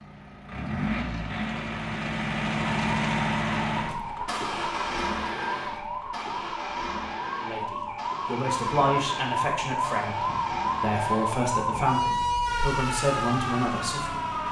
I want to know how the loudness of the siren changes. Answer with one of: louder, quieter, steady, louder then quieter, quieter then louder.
louder.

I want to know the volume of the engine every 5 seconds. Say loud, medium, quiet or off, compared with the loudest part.
loud, medium, medium.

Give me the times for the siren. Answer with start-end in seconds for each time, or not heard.
2.5-14.4.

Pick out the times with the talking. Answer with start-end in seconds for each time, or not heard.
7.3-14.4.